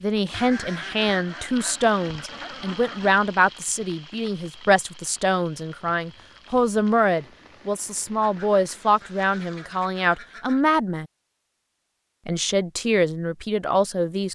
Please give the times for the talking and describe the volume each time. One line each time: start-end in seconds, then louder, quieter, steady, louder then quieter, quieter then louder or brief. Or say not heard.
0.0-11.1 steady
12.2-14.3 brief.